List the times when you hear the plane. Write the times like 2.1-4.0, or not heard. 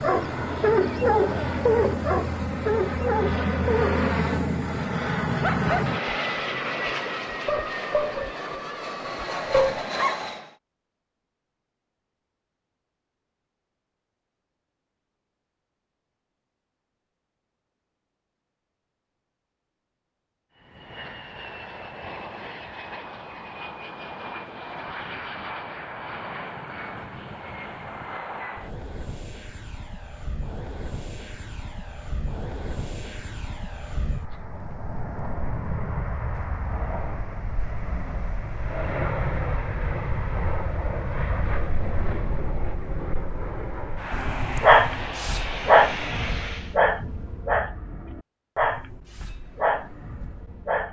0.0-10.6, 20.6-46.8.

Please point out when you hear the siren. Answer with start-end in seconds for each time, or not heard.
not heard.